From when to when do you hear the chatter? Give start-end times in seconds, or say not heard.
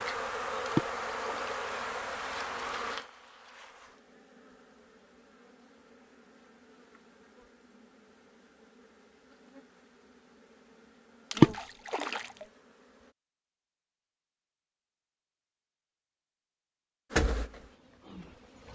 not heard.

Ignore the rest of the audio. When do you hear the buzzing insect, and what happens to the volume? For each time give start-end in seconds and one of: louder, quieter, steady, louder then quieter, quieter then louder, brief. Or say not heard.
0.0-13.2 quieter then louder
17.1-18.7 brief.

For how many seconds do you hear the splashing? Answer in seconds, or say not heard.
2 s.